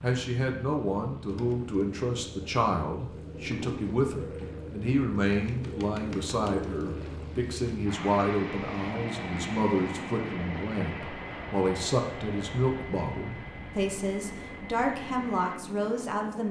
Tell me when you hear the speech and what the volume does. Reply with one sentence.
The speech can be heard from 0.0 to 16.4 s, at a steady volume.